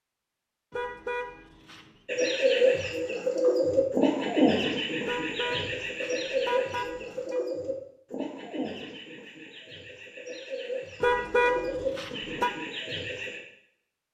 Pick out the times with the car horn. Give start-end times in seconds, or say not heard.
0.7-2.0, 5.0-7.4, 11.0-12.5.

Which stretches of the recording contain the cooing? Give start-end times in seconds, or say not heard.
2.0-13.4.